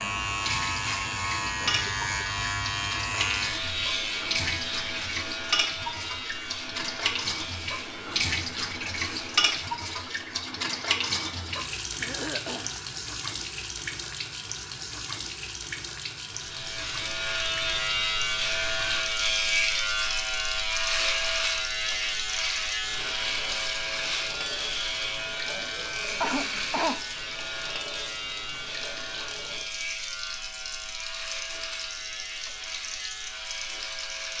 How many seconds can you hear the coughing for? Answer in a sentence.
The coughing can be heard for 3 seconds in total.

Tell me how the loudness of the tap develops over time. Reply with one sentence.
The loudness of the tap goes down.